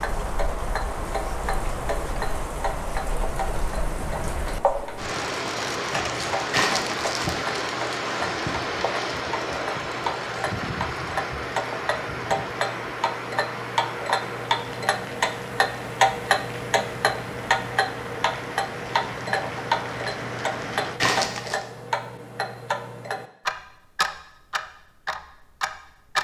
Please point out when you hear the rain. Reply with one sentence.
The rain can be heard from 0.0 to 21.0 s.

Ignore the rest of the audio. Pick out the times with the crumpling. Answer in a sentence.
You can hear the crumpling from 6.5 to 7.5 s and from 21.0 to 21.6 s.